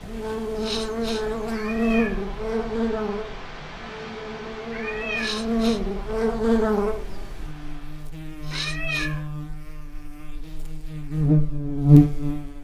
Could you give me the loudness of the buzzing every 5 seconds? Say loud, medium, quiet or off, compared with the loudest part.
medium, medium, loud.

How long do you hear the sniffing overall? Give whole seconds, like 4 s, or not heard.
2 s.